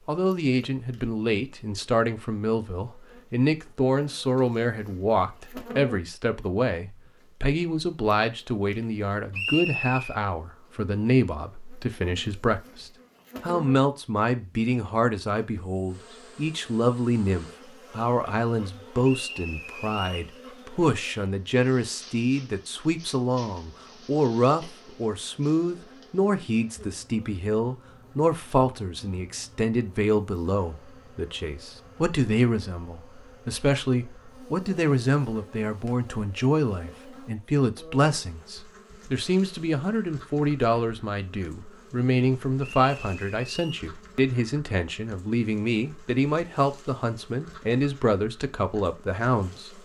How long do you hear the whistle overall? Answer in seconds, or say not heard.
3 s.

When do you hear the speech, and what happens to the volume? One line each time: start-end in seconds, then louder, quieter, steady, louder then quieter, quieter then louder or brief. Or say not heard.
0.1-49.8 steady.